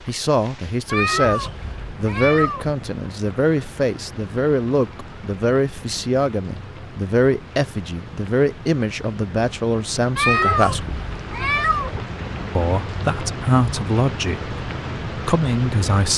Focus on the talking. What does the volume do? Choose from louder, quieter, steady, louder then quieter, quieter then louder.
steady.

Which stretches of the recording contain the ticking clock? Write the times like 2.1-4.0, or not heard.
not heard.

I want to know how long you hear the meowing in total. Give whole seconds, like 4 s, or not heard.
4 s.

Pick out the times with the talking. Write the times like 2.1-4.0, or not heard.
0.1-11.0, 12.6-16.1.